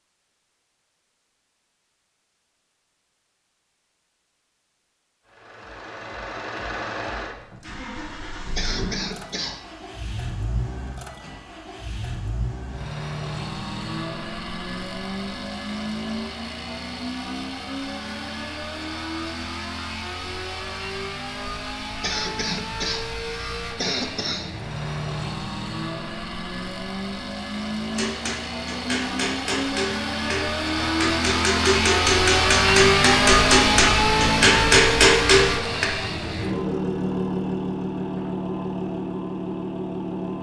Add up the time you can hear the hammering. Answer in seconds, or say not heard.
8 s.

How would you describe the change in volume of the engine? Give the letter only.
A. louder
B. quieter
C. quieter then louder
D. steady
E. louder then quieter
A.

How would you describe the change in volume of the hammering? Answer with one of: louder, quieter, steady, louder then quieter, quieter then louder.
louder.